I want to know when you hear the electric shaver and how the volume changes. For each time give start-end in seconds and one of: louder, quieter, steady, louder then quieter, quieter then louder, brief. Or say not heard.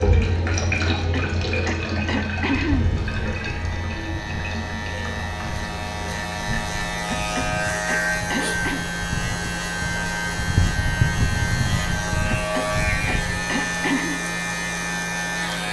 0.1-15.6 louder.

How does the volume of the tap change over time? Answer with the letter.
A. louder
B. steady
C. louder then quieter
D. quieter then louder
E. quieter
E.